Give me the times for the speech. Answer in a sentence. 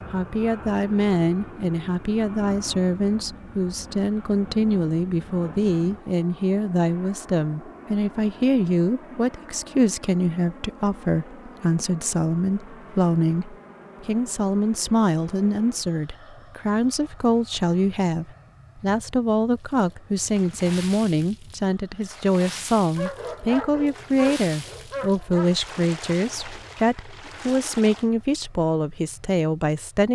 You can hear the speech from 0.1 to 30.1 s.